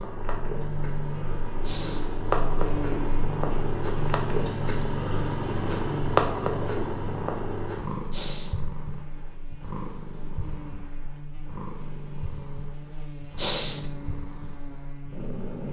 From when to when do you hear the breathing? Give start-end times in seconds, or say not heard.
1.6-2.1, 8.1-8.6, 13.3-13.9.